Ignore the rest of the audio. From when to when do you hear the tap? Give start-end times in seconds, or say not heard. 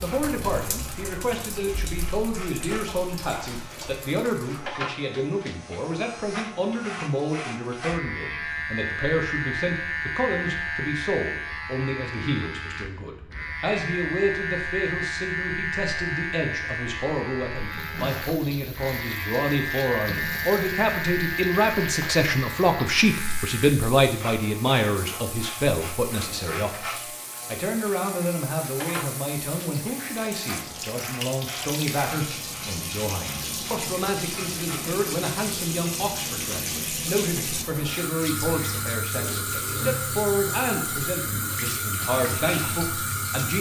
0.0-4.6, 17.6-43.5.